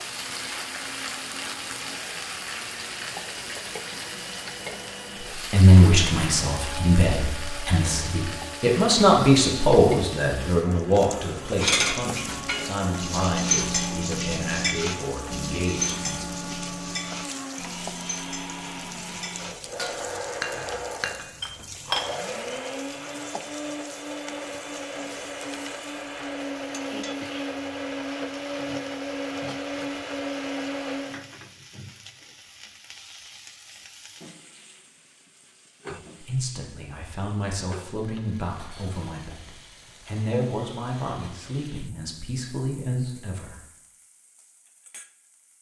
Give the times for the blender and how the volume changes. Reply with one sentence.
You can hear the blender from 0.0 to 31.2 s, getting louder.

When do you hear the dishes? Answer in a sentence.
You can hear the dishes from 11.6 to 22.1 s.